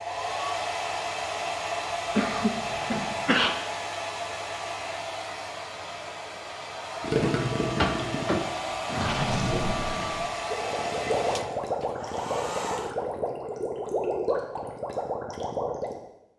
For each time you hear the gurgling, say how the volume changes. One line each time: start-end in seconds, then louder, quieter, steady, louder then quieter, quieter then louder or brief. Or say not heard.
7.0-16.0 steady.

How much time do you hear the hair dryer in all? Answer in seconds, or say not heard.
13 s.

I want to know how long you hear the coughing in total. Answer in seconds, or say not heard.
3 s.